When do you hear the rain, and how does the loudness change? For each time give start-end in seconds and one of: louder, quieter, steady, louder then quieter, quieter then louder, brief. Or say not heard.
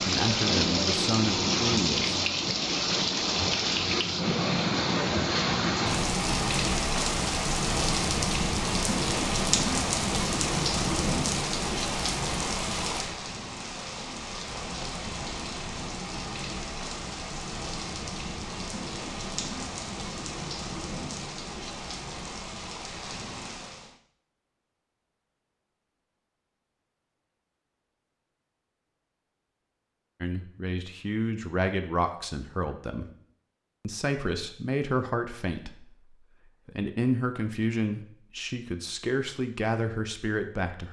0.0-23.9 quieter.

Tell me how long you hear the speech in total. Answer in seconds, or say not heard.
12 s.